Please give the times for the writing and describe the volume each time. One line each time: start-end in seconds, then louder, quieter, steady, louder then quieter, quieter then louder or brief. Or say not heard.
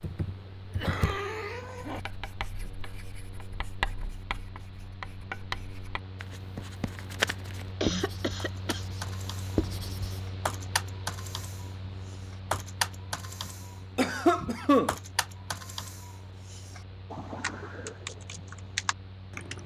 1.9-10.3 louder.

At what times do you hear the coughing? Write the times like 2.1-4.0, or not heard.
0.8-2.0, 7.8-8.8, 13.9-14.9.